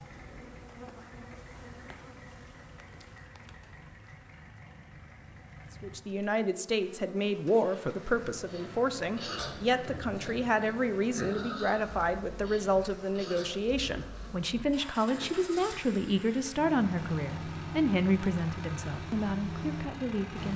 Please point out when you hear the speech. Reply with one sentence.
The speech can be heard from 5.8 to 20.5 s.